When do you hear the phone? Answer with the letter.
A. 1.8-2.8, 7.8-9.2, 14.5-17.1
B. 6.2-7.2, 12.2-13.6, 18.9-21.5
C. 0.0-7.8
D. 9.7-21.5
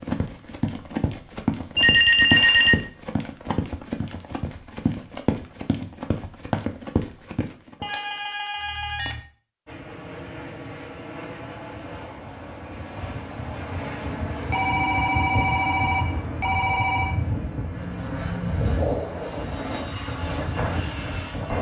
A.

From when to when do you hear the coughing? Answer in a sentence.
The coughing can't be heard in this clip.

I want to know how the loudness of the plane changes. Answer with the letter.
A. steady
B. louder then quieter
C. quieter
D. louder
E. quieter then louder
D.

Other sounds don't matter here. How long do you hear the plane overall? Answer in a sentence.
You can hear the plane for 12 seconds altogether.